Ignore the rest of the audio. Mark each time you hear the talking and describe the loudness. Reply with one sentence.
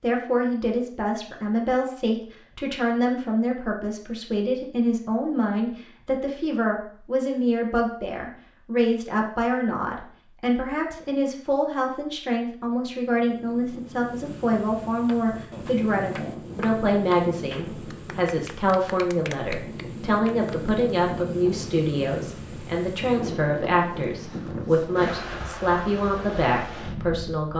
The talking can be heard from 0.0 to 27.5 s, at a steady volume.